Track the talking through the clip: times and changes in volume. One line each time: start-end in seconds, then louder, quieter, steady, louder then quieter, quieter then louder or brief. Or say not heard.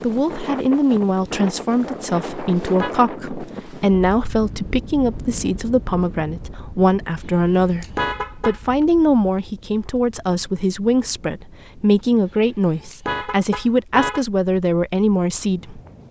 0.0-15.8 steady.